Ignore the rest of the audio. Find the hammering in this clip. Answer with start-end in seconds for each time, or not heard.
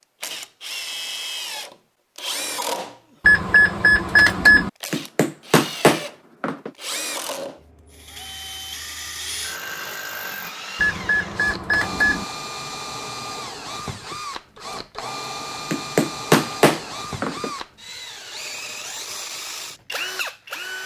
4.9-6.7, 15.7-17.5.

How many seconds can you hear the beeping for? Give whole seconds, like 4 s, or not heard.
3 s.